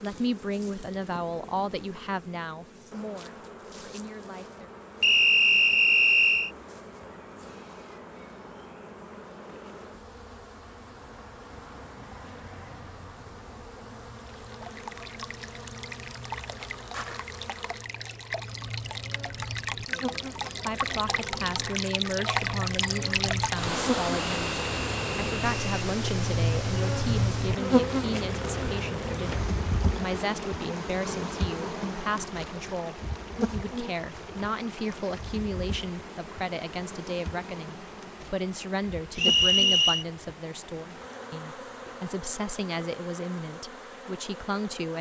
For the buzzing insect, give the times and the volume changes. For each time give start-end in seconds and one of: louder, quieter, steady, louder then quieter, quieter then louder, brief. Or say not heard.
0.0-44.9 louder then quieter.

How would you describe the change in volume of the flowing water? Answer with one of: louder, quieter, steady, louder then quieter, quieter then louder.
louder then quieter.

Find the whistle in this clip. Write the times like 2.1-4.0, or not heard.
5.0-6.5, 24.3-25.6, 39.1-40.0.